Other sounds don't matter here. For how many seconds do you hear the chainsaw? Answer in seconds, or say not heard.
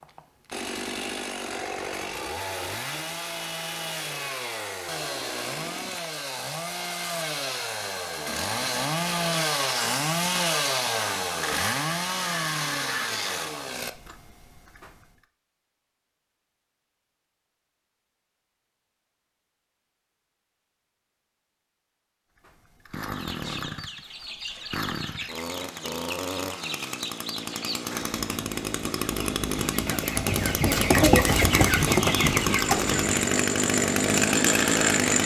28 s.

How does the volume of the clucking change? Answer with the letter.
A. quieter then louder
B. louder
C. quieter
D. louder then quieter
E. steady
B.